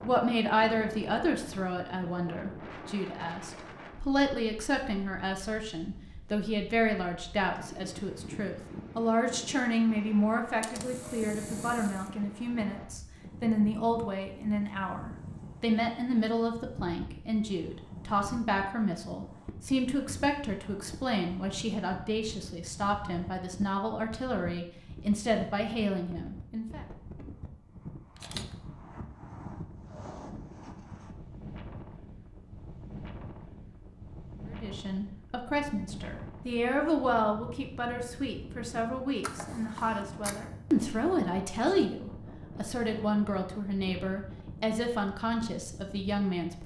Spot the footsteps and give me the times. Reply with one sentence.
The footsteps can't be heard in this clip.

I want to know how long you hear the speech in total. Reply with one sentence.
The speech can be heard for 39 seconds in total.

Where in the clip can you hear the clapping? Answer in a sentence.
You can't hear the clapping here.